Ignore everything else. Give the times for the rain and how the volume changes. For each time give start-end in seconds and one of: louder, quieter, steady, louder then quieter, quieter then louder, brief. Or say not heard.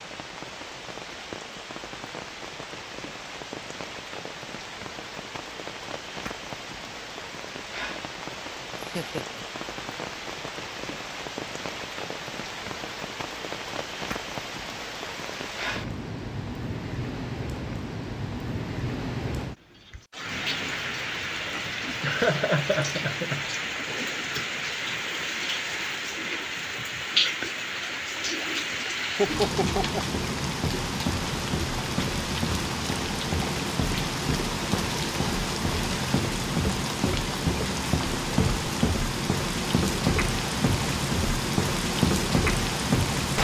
0.0-43.3 louder.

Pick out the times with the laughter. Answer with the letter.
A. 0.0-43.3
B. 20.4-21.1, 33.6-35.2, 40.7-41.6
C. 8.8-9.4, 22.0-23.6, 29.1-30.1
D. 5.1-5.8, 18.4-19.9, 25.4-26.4
C.